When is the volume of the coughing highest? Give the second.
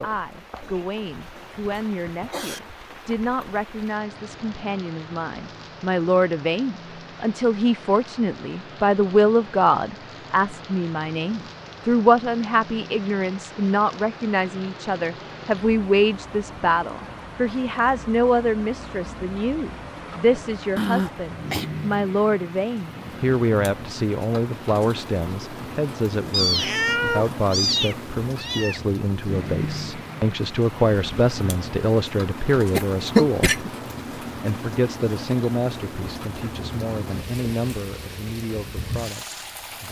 33 s.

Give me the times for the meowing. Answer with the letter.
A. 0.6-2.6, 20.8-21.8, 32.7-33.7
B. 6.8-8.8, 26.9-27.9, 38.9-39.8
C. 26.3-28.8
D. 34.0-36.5
C.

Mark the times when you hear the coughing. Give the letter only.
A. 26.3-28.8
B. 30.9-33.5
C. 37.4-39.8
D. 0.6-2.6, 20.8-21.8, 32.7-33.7
D.